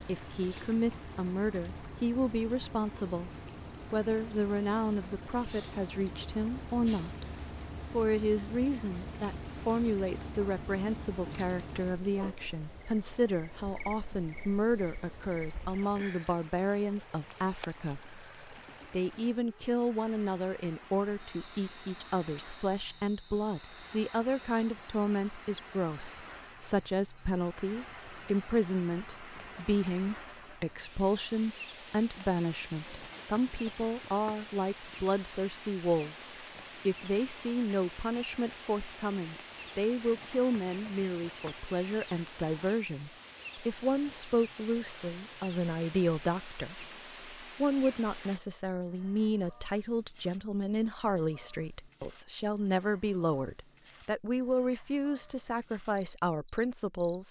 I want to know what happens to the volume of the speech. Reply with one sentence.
The volume of the speech stays about the same.